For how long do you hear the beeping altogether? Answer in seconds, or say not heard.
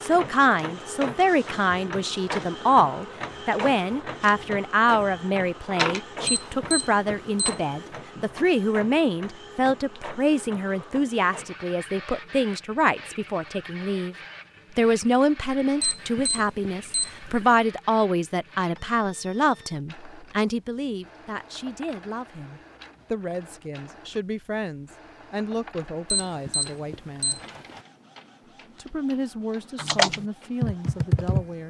4 s.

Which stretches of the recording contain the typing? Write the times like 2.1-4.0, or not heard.
29.8-31.6.